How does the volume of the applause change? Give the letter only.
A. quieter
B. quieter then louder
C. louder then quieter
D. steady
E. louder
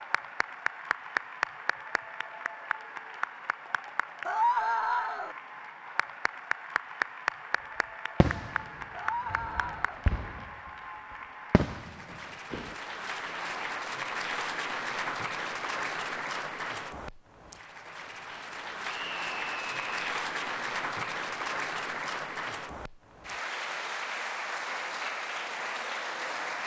D.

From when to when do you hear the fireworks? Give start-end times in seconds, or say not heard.
8.2-10.5, 11.5-12.8.